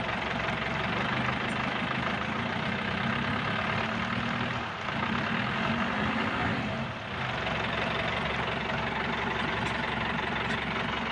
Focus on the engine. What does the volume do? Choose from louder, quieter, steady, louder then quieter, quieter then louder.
steady.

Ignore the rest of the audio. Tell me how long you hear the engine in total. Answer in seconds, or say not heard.
11 s.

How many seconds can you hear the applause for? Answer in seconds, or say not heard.
11 s.